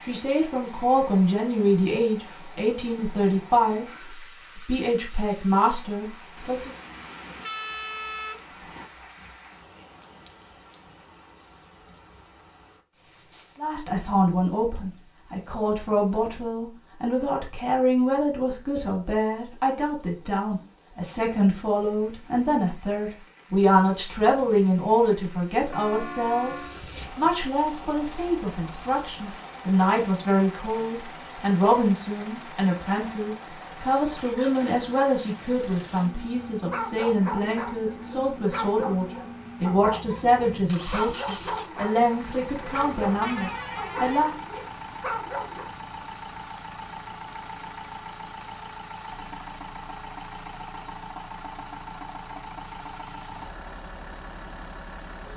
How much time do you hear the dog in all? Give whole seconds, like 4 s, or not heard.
9 s.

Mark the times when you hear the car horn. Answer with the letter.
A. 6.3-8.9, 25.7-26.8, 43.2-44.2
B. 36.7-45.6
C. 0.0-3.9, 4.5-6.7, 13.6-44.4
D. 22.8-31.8
A.